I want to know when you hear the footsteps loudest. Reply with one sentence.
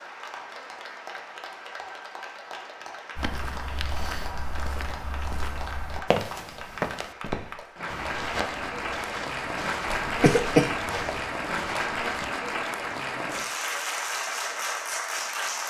The volume of the footsteps peaks at 6 seconds.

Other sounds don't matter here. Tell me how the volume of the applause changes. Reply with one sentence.
The loudness of the applause goes up.